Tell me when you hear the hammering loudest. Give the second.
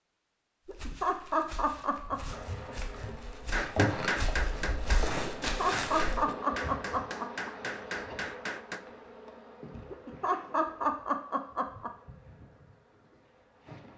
4 s.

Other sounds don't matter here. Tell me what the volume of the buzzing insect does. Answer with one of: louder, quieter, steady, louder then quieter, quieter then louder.
quieter.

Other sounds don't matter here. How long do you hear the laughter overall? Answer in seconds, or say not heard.
6 s.